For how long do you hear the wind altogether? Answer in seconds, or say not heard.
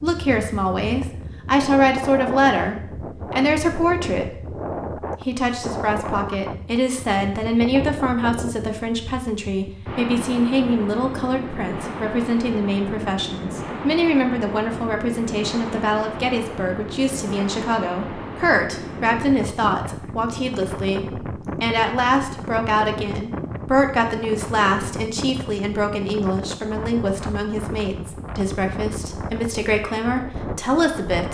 31 s.